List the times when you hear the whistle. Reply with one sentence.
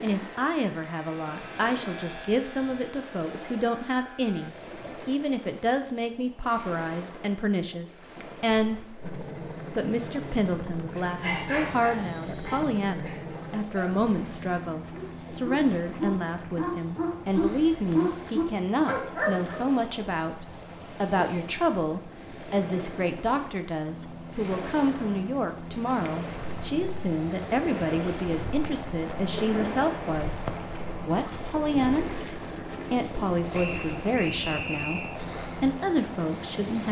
You can hear the whistle from 33.5 to 35.2 s.